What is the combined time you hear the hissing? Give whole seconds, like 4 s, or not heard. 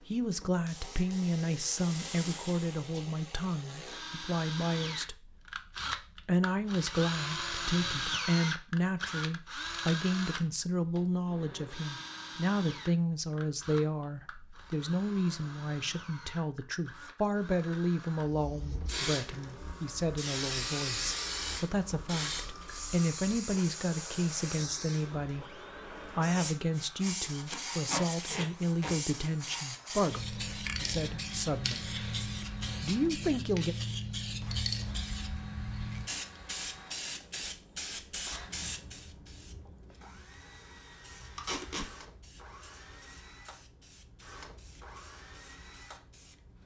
31 s.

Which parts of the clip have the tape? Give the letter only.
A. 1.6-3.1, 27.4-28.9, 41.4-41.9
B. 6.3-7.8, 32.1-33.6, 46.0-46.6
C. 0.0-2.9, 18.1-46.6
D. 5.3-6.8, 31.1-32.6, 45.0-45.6
A.